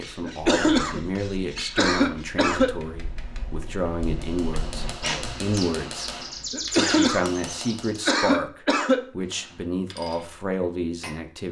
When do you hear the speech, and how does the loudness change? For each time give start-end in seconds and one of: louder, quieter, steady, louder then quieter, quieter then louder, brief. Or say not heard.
0.0-11.4 steady.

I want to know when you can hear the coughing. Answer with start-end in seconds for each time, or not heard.
0.2-2.8, 6.5-9.0.